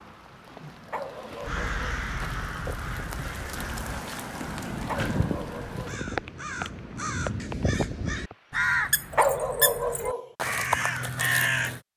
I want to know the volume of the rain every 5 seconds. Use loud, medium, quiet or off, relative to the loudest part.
loud, loud, off.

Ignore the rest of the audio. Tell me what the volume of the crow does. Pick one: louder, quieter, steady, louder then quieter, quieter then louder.
louder.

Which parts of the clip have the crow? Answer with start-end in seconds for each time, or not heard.
1.4-11.8.